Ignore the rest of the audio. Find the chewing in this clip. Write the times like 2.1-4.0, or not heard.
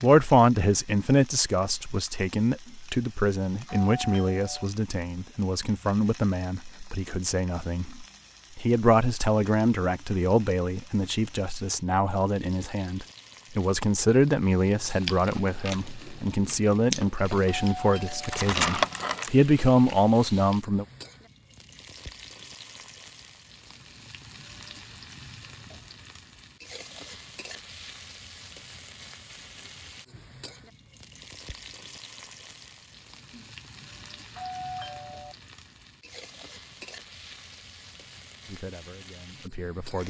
14.9-20.6.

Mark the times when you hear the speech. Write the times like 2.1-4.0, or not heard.
0.0-20.9, 38.5-40.0.